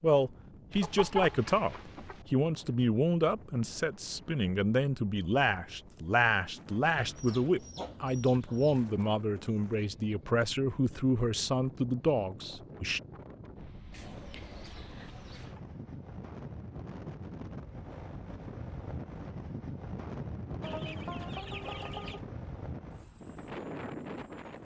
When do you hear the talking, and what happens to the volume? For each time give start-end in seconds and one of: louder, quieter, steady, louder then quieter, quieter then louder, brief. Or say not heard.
0.0-13.0 steady.